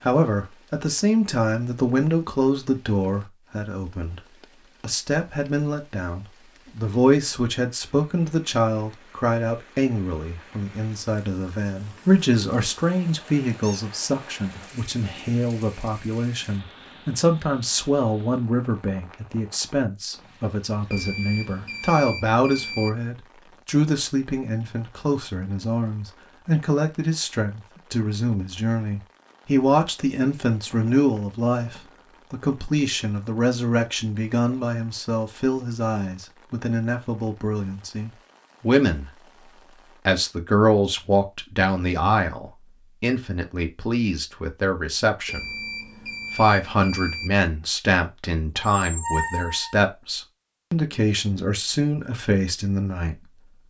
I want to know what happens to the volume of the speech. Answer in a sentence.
The volume of the speech stays about the same.